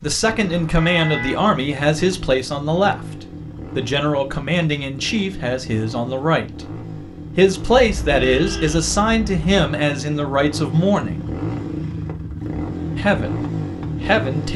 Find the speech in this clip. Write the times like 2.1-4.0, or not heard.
0.0-11.3, 12.9-13.4, 14.0-14.5.